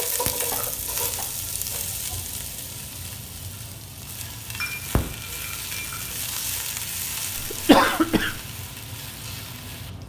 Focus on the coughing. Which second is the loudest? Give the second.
8 s.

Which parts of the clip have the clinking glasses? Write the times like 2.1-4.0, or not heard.
4.6-6.1.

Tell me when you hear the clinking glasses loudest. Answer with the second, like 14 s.
5 s.